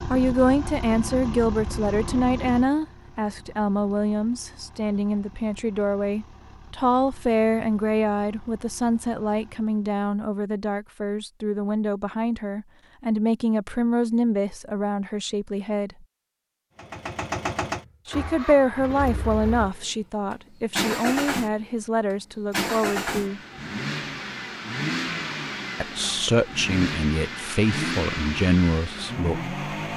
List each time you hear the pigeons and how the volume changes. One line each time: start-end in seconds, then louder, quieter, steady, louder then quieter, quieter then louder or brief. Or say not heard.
not heard.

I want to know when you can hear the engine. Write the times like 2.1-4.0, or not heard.
0.0-9.9, 16.8-29.9.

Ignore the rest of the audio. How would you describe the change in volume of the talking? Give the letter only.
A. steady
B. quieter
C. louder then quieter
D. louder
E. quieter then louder
A.